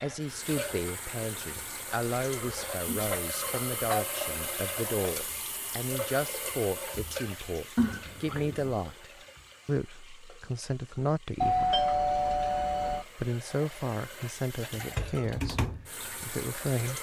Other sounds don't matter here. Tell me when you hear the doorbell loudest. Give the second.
12 s.